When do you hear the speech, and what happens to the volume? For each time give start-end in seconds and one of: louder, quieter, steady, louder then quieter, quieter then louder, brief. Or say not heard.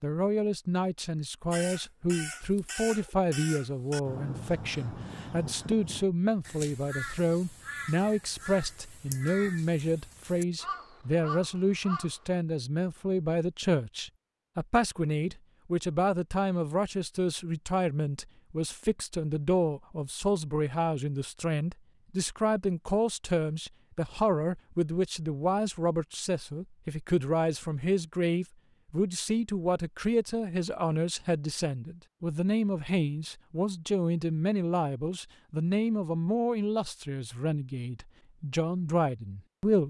0.0-39.8 steady.